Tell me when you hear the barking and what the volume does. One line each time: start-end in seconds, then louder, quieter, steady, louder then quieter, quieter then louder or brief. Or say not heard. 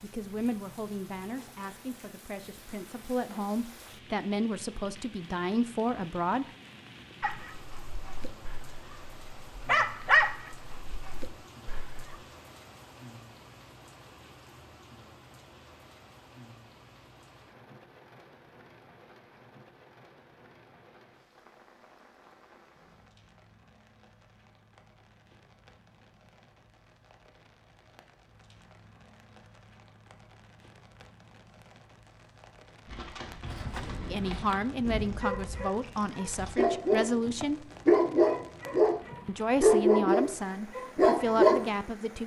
7.2-12.2 louder then quieter
33.5-41.7 louder.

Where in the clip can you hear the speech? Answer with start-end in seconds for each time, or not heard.
0.0-6.5, 34.0-37.6, 39.2-42.2.